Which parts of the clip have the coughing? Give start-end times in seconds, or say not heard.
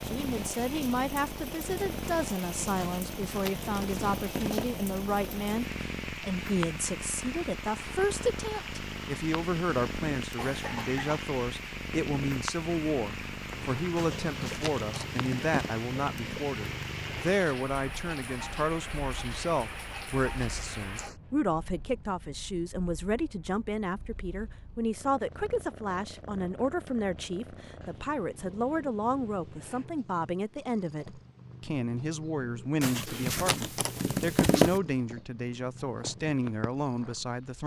10.3-11.2.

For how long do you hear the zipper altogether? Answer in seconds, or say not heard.
6 s.